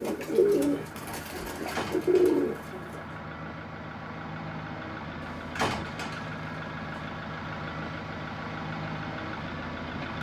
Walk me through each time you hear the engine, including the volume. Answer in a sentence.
You can hear the engine from 0.0 to 10.1 s, getting louder.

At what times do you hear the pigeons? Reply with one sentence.
The pigeons can be heard from 0.0 to 3.0 s.